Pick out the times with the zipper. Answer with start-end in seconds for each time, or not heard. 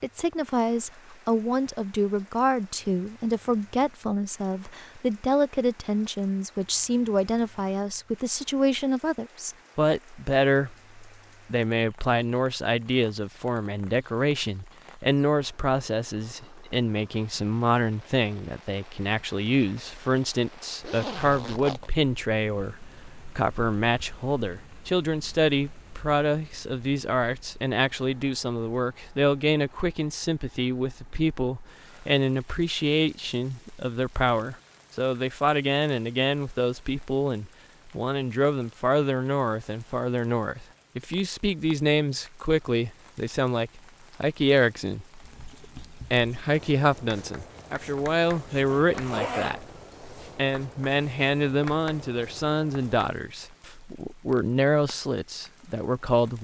20.8-21.9, 48.0-49.6.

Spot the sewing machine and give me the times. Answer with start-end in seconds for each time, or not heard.
not heard.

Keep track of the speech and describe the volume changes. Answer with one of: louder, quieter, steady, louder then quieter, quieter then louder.
steady.